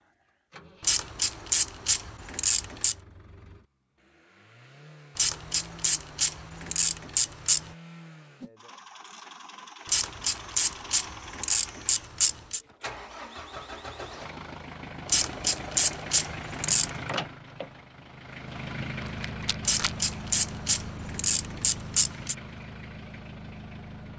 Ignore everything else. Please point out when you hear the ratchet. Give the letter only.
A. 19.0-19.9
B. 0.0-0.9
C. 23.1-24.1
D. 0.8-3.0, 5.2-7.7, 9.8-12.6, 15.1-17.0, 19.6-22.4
D.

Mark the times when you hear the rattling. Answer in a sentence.
The rattling can be heard from 19.0 to 19.9 s.